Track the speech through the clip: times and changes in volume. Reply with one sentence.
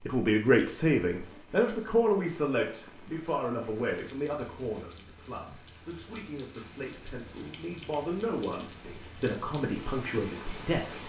You can hear the speech from 0.0 to 11.0 s, getting quieter then louder.